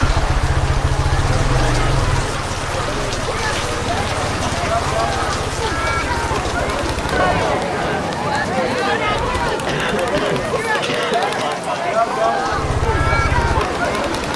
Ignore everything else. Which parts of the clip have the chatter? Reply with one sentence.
The chatter can be heard from 0.1 to 14.3 s.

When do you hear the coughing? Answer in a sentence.
You can hear the coughing from 9.7 to 11.6 s.